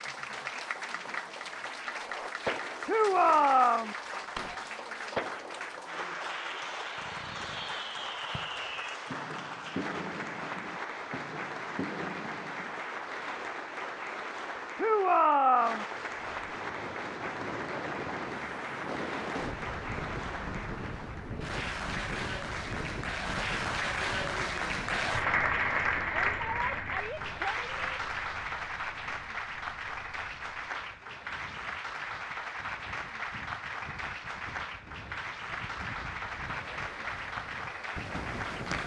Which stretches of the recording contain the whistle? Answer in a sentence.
You can't hear the whistle here.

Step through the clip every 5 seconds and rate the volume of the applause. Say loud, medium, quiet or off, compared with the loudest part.
medium, medium, medium, medium, loud, loud, medium, medium.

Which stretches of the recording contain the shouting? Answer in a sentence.
You can hear the shouting from 2.9 to 4.0 s, from 14.8 to 15.8 s and from 26.0 to 27.8 s.